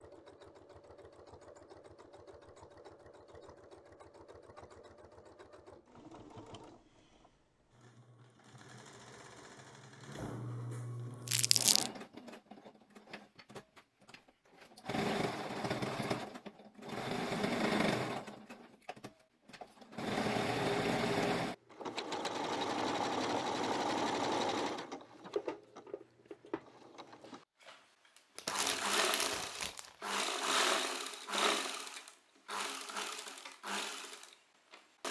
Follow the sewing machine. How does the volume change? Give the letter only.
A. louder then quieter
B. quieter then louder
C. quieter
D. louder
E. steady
D.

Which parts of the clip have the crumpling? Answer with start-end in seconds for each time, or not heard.
11.2-11.9, 28.4-30.2.